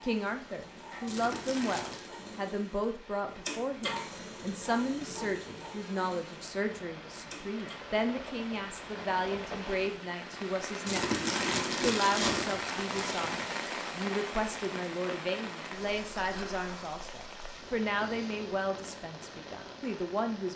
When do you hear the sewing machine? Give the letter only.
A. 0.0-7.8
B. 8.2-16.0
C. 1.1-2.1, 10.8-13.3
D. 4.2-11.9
A.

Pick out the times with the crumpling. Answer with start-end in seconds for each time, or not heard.
1.1-2.1, 10.8-13.3.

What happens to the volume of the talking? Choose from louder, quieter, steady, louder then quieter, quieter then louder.
steady.